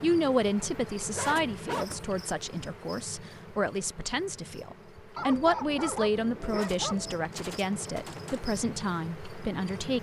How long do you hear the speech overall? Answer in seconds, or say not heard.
10 s.